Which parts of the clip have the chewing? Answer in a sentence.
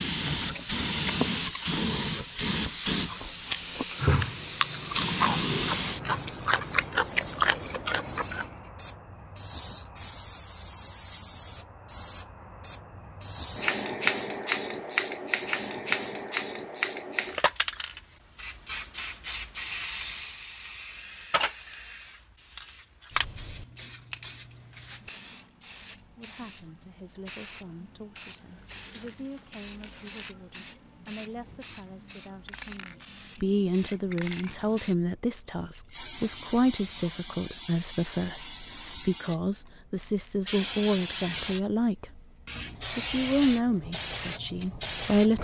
You can hear the chewing from 0.3 to 8.6 s.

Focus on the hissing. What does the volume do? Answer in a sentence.
The volume of the hissing goes down.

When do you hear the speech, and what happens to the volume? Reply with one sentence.
You can hear the speech from 26.0 to 42.2 s, getting louder; and briefly from 43.0 to 45.3 s.